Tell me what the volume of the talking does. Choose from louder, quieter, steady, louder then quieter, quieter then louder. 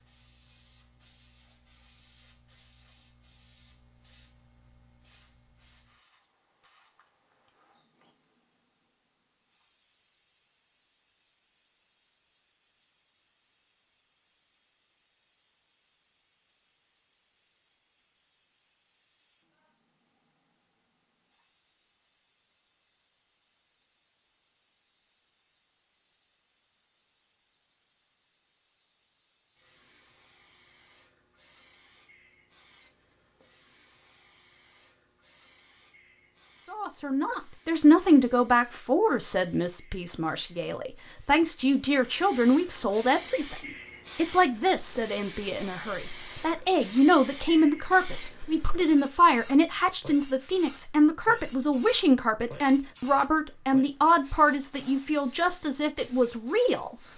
steady.